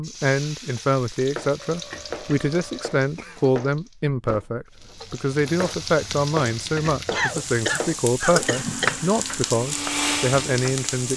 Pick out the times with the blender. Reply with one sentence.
The blender can be heard from 8.5 to 11.1 s.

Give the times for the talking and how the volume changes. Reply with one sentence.
The talking can be heard from 0.0 to 11.1 s, at a steady volume.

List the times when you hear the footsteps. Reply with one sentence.
The footsteps can't be heard in this clip.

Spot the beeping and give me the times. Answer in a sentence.
The beeping can't be heard in this clip.